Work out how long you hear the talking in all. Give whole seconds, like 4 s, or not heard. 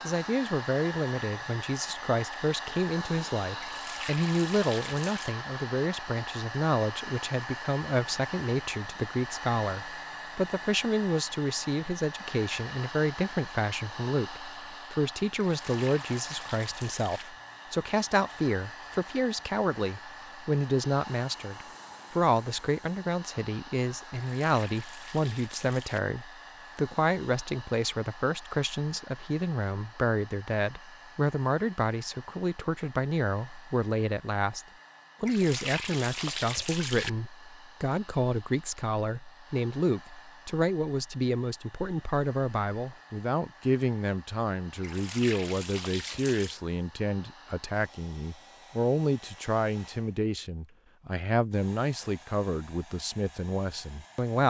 54 s.